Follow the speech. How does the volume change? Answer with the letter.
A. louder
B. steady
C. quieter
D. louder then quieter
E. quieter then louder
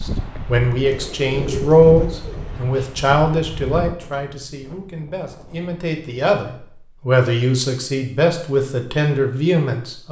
E.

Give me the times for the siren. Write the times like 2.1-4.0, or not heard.
not heard.